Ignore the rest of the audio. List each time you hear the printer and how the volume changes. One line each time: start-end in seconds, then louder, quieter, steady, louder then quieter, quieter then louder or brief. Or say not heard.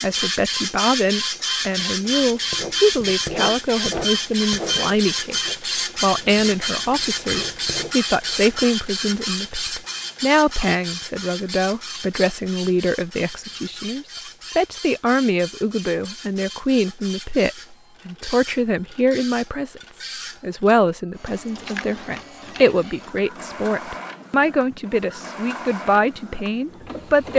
0.0-27.3 quieter.